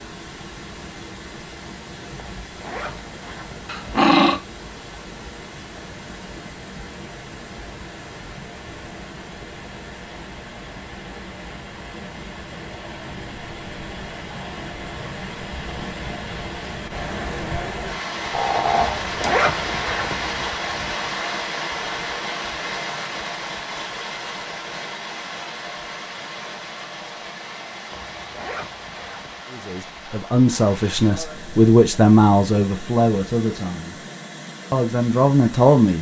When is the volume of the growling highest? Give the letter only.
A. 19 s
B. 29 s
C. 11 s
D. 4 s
D.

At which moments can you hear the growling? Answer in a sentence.
The growling can be heard from 3.6 to 4.4 s and from 18.3 to 19.3 s.